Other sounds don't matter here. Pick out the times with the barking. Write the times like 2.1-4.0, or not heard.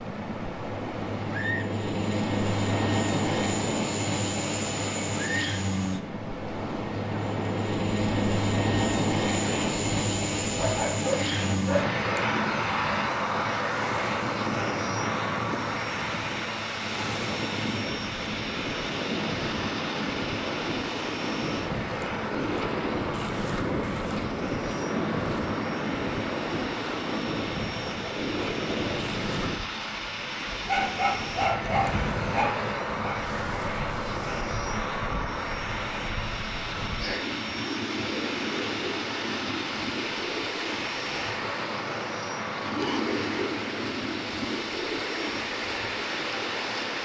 10.6-11.9, 30.6-33.1.